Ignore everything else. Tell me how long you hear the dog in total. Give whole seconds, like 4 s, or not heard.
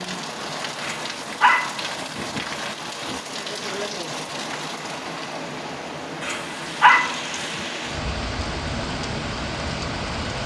4 s.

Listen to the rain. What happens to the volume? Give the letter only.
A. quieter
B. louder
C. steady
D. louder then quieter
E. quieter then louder
C.